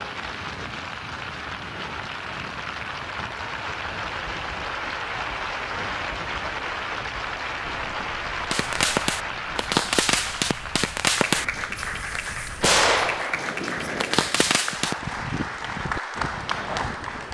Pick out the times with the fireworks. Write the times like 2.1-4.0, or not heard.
8.5-14.9.